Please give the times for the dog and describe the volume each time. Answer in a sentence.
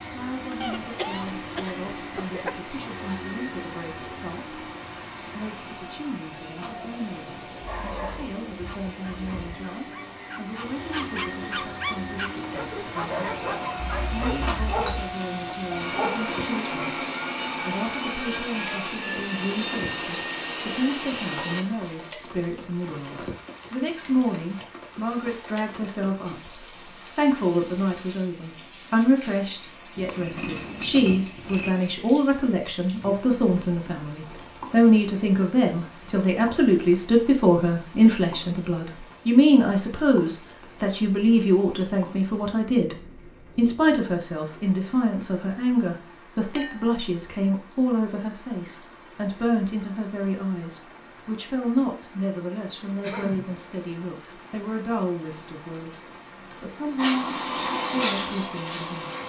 The dog can be heard from 7.7 to 16.3 s, getting louder.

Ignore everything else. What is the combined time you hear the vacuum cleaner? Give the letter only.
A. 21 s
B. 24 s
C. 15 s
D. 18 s
B.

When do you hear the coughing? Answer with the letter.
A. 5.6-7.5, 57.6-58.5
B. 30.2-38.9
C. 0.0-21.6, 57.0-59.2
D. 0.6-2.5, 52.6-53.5
D.